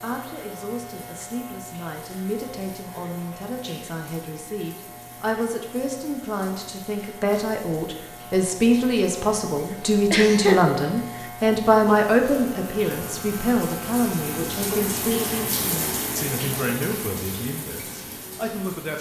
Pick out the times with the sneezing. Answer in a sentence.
The sneezing can be heard from 10.1 to 10.6 s.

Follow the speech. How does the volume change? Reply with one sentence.
The loudness of the speech goes up, then down.